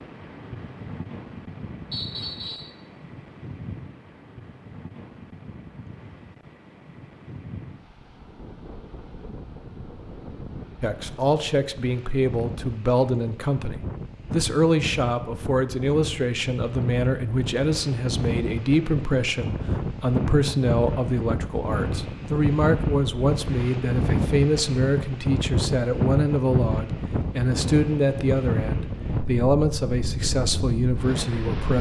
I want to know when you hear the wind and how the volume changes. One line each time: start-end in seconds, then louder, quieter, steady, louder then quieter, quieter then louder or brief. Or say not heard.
0.0-31.7 louder.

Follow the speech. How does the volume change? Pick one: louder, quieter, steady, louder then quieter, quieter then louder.
steady.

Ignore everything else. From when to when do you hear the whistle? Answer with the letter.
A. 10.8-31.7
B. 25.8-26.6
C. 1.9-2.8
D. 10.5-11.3
C.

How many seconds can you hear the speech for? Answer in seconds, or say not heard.
21 s.